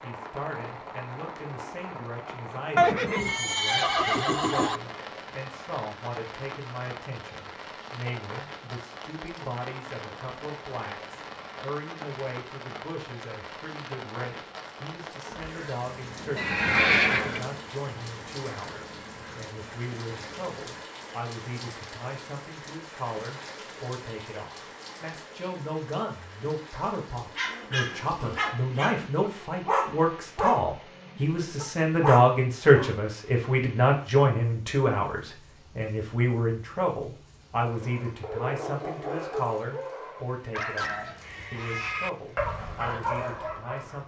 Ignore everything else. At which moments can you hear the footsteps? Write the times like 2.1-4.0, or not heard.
not heard.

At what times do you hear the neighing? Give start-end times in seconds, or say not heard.
2.8-4.8, 16.4-17.5, 40.9-42.1.